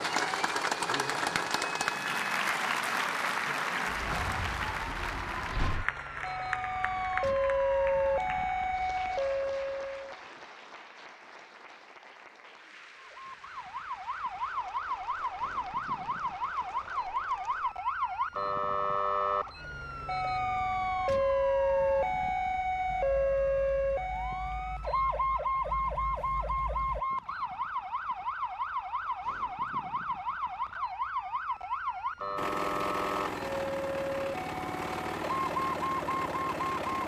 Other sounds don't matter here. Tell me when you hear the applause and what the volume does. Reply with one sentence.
The applause can be heard from 0.0 to 17.8 s, getting quieter.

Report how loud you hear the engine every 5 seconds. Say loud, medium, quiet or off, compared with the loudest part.
off, off, off, off, quiet, quiet, loud, loud.